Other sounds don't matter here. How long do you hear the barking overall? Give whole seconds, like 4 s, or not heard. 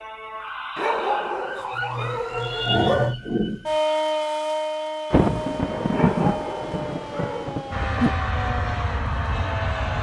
4 s.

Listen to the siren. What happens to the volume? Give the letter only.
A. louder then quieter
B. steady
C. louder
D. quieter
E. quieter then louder
A.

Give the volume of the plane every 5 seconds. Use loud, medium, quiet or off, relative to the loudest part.
off, loud.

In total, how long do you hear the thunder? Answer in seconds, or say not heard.
3 s.